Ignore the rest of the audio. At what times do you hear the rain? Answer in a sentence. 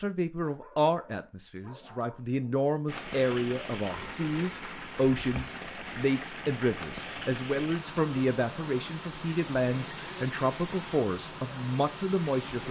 You can hear the rain from 2.9 to 12.6 s.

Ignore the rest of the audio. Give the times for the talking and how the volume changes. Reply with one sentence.
The talking can be heard from 0.0 to 12.6 s, at a steady volume.